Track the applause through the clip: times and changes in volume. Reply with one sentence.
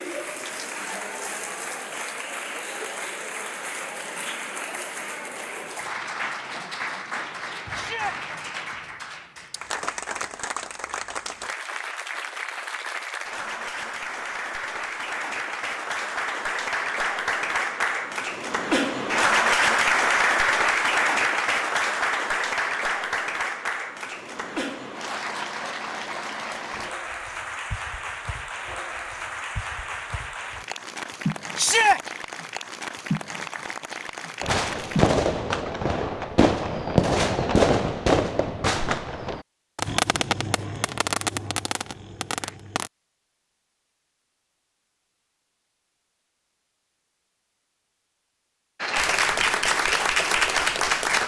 The applause can be heard from 0.0 to 35.1 s, getting louder then quieter; and briefly from 48.8 to 51.2 s.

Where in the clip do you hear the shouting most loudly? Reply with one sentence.
The volume of the shouting peaks at 32 seconds.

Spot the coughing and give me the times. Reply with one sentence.
You can't hear the coughing here.